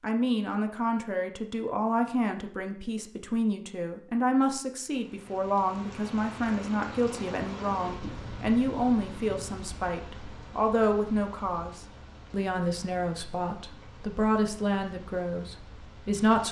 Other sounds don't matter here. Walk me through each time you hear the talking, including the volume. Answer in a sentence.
You can hear the talking from 0.0 to 16.4 s, at a steady volume.